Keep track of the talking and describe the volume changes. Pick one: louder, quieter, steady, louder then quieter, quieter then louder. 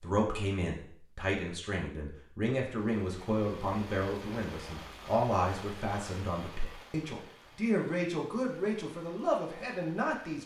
steady.